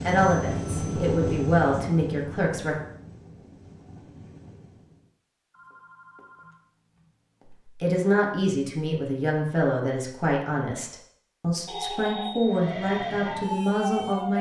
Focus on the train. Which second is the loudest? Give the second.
1 s.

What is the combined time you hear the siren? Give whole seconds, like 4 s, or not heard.
2 s.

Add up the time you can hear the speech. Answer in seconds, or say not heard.
9 s.